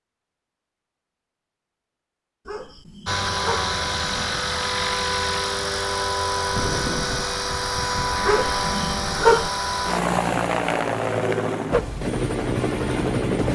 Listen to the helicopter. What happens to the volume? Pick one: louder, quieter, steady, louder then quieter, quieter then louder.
steady.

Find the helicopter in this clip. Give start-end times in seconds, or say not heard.
3.0-13.5.